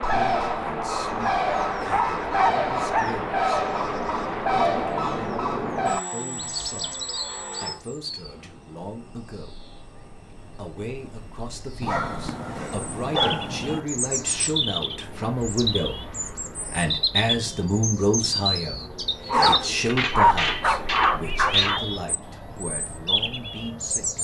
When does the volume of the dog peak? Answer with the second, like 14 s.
20 s.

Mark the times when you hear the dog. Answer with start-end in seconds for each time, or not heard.
1.8-3.3, 11.8-13.8, 19.2-21.9.